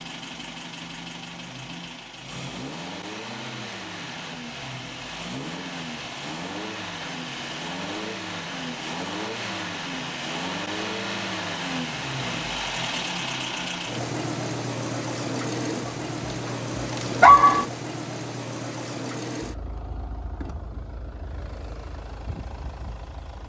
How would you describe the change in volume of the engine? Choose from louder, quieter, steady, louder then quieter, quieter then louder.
louder then quieter.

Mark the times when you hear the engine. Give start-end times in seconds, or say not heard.
0.0-23.4.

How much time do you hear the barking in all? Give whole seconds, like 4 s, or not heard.
2 s.